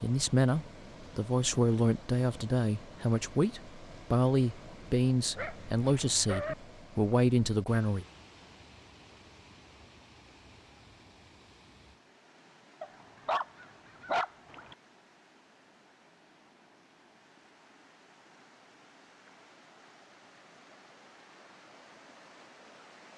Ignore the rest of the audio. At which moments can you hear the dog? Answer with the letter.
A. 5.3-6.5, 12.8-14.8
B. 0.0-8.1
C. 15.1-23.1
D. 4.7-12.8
A.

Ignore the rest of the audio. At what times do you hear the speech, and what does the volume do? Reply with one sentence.
The speech can be heard from 0.0 to 8.1 s, at a steady volume.